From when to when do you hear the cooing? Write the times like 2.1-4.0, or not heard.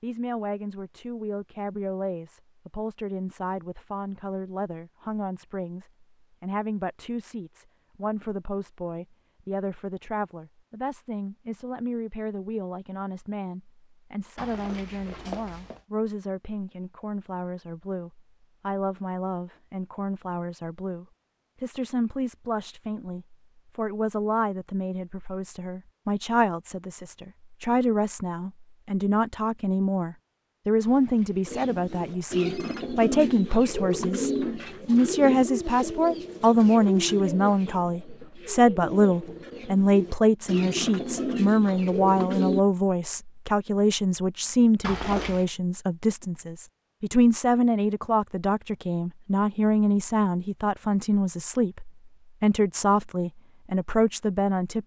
31.4-42.6.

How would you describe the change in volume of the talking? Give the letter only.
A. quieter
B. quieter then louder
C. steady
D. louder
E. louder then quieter
D.